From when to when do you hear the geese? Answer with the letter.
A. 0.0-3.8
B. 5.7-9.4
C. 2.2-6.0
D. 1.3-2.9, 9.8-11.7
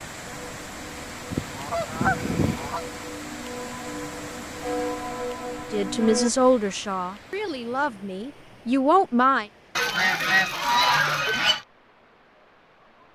D.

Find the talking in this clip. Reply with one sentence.
The talking can be heard from 5.7 to 9.4 s.